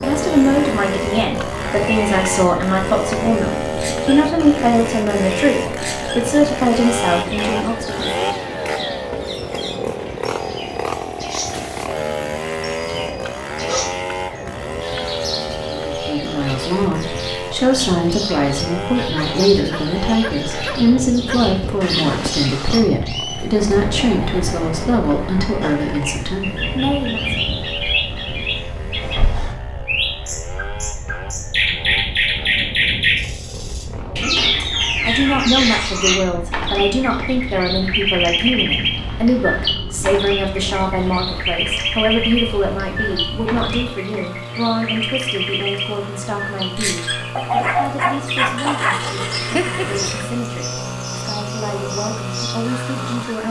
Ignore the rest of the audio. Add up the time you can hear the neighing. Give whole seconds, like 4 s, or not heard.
3 s.